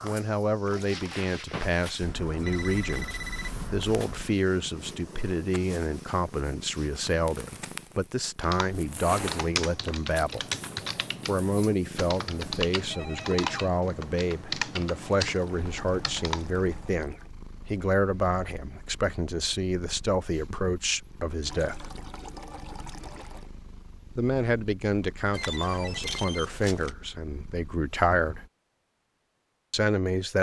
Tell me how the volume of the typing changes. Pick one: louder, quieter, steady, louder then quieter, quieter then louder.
steady.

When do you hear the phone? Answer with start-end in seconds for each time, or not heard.
2.0-4.3, 12.9-13.7, 25.3-26.9.